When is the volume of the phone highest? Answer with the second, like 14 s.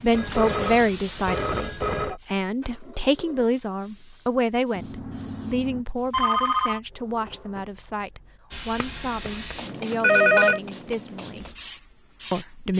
10 s.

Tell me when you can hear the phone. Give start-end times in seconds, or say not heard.
0.1-2.2, 4.8-6.8, 8.8-10.6.